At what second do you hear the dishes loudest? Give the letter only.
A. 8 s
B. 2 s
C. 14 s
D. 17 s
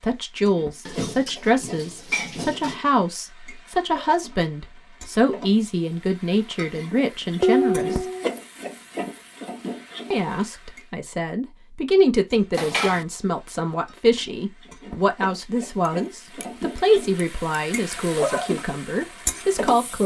A.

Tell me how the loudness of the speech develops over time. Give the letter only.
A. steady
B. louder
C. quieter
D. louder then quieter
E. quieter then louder
A.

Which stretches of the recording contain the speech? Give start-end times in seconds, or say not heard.
0.0-8.1, 10.1-20.0.